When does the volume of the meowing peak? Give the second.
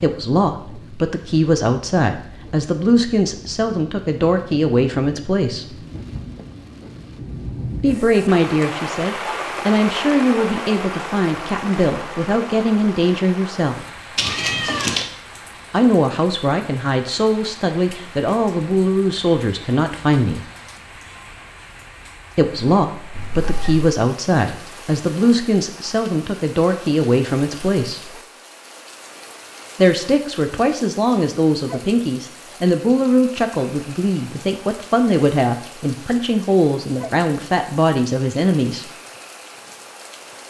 15 s.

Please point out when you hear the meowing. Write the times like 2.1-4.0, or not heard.
14.2-15.1, 23.1-23.9.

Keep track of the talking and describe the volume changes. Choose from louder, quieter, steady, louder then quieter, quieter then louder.
steady.